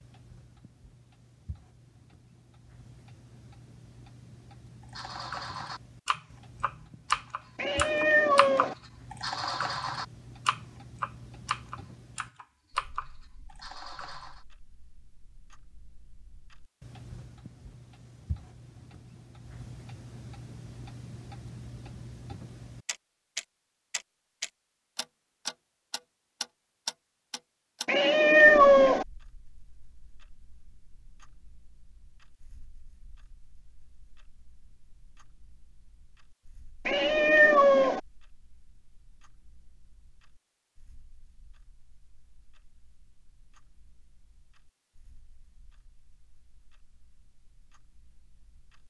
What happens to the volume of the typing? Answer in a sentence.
The loudness of the typing goes up, then down.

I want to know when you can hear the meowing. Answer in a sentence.
You can hear the meowing from 7.5 to 8.8 s, from 27.9 to 29.1 s and from 36.9 to 38.0 s.